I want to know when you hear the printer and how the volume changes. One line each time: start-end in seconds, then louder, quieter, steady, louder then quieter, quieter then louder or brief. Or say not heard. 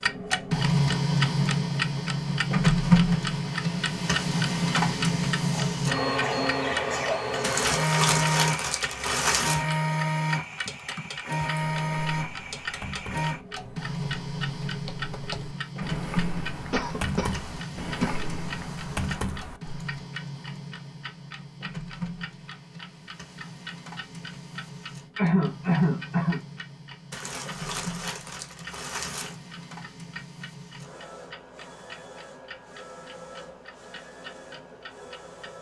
0.0-35.5 quieter.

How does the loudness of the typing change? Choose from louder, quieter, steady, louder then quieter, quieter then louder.
louder.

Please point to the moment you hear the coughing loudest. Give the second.
26 s.